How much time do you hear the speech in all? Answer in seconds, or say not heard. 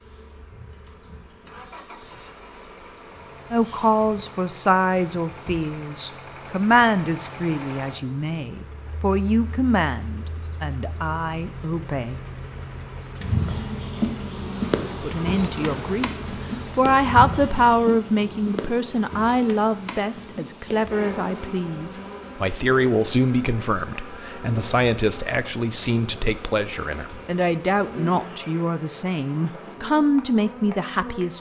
25 s.